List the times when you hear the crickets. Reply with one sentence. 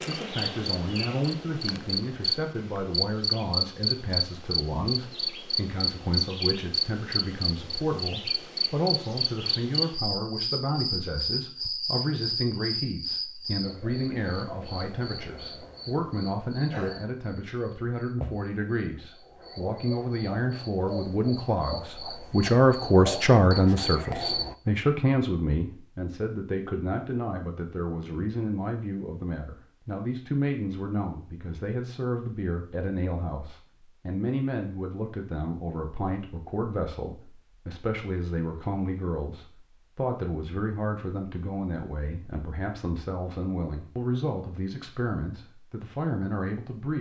You can hear the crickets from 0.0 to 24.6 s.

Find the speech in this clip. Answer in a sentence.
The speech can be heard from 0.1 to 46.9 s.